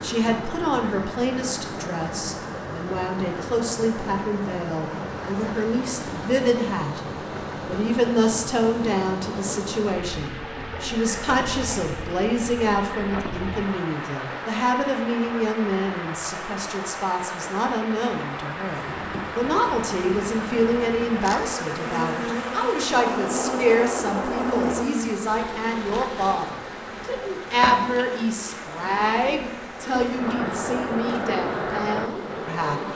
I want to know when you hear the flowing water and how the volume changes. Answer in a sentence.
You can hear the flowing water from 0.0 to 32.8 s, at a steady volume.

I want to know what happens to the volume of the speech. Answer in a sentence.
The volume of the speech stays about the same.